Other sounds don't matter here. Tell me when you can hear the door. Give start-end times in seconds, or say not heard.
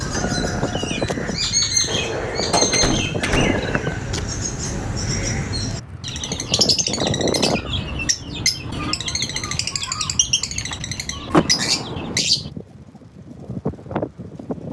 1.9-3.9, 11.3-12.2.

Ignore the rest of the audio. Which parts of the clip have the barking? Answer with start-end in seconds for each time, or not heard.
not heard.